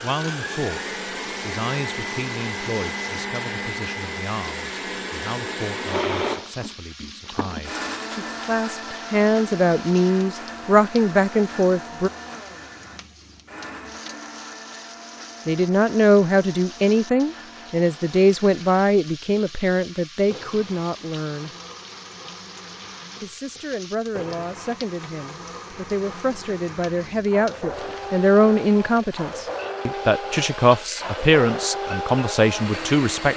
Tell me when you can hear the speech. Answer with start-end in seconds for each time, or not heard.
0.0-12.1, 15.4-21.5, 23.2-33.3.